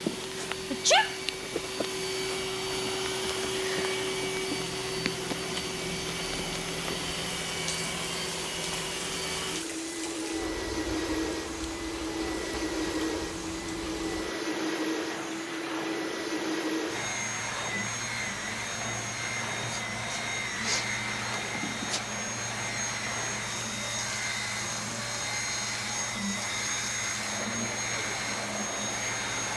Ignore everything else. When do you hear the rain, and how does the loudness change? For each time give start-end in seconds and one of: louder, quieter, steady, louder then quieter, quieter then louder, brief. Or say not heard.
0.0-29.5 steady.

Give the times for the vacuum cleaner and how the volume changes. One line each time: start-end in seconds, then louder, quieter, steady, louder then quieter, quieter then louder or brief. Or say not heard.
0.0-29.5 steady.